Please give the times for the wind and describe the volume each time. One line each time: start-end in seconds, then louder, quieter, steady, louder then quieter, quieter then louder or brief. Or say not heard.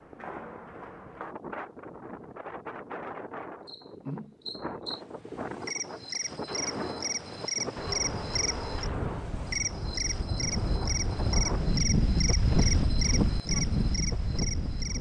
0.0-14.9 louder.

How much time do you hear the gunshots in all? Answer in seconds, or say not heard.
3 s.